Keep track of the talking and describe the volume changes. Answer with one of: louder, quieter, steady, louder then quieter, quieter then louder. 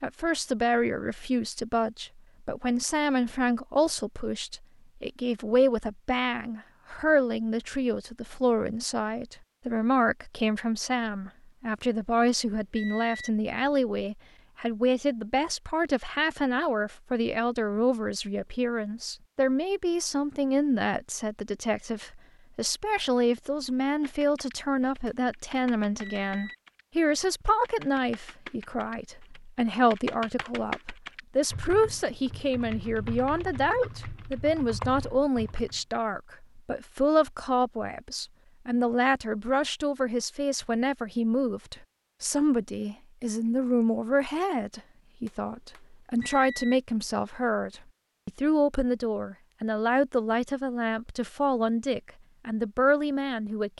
steady.